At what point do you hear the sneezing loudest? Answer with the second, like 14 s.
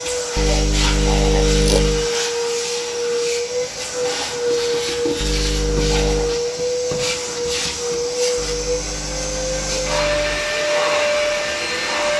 2 s.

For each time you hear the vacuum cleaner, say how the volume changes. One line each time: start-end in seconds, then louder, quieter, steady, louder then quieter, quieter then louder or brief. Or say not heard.
0.0-12.1 steady.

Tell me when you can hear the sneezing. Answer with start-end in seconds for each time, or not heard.
0.3-2.1, 5.2-6.4, 8.3-10.4.